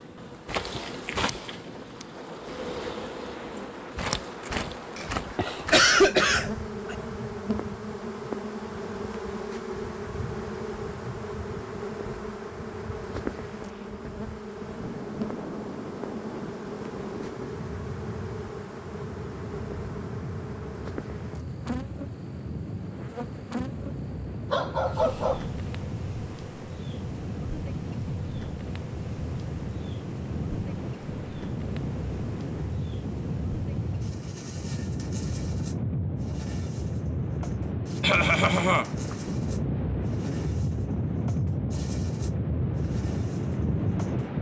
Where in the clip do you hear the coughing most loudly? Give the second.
6 s.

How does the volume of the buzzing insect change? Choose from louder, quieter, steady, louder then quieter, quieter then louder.
quieter.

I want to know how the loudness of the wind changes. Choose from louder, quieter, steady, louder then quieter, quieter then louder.
louder.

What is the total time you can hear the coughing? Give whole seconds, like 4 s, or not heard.
3 s.